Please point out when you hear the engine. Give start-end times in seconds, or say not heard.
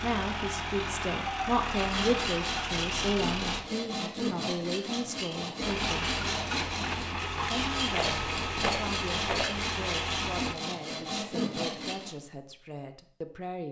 0.0-3.6, 5.6-10.6.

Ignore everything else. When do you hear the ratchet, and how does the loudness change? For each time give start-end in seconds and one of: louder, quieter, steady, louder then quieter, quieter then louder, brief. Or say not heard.
not heard.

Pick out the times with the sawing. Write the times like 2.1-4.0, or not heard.
1.7-12.2.